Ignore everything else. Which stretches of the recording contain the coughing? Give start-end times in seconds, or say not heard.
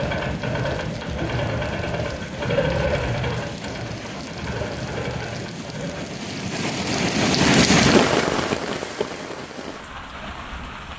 not heard.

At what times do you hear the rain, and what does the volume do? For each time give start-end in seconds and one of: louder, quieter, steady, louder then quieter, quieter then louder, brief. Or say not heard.
0.0-10.9 louder then quieter.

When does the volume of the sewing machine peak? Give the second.
3 s.